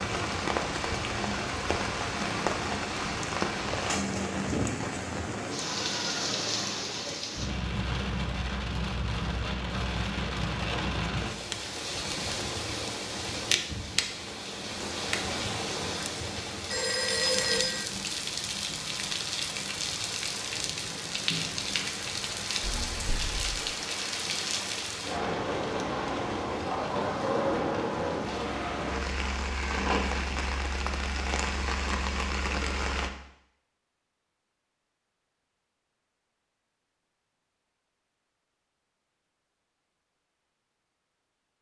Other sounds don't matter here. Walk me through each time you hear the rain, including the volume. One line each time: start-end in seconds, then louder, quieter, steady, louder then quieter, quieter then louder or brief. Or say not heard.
0.0-33.1 steady.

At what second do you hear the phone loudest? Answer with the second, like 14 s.
17 s.